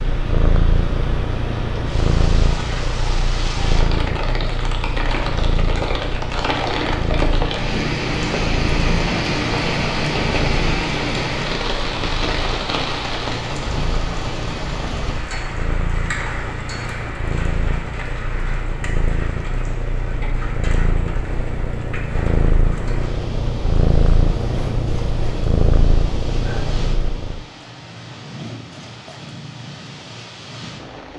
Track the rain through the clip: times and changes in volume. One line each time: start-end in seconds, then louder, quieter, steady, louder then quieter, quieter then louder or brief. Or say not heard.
0.0-31.1 louder then quieter.